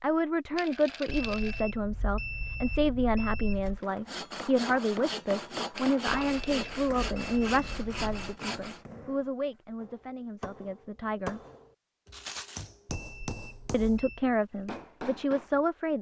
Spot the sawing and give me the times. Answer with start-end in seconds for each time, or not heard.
3.6-8.8.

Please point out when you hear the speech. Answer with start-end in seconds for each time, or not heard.
0.0-11.4, 13.7-15.9.